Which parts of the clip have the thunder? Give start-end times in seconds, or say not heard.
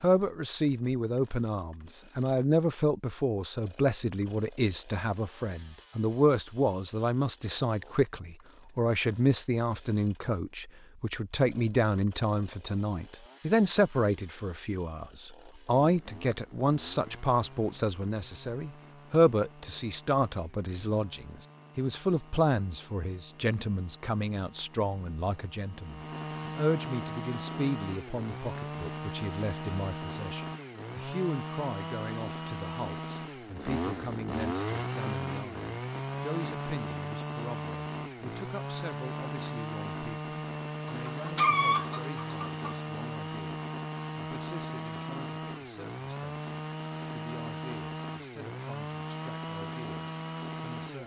not heard.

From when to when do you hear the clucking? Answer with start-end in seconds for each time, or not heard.
40.9-42.8.